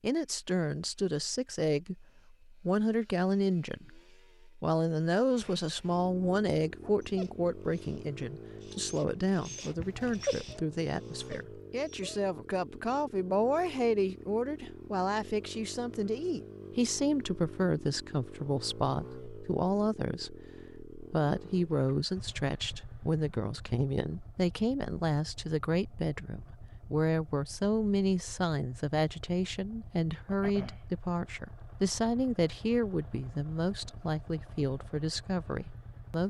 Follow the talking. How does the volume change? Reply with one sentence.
The volume of the talking stays about the same.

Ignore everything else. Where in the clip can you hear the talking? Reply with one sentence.
The talking can be heard from 0.0 to 36.2 s.